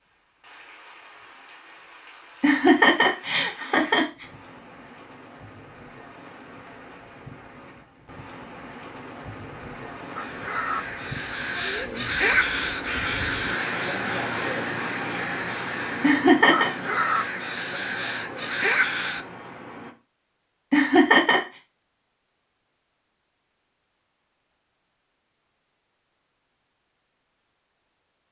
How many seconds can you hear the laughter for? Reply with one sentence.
The laughter can be heard for 3 seconds in total.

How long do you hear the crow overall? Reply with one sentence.
The crow can be heard for 9 seconds in total.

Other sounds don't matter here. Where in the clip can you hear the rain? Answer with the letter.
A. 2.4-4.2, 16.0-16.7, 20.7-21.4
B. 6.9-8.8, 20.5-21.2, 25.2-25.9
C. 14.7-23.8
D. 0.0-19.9
D.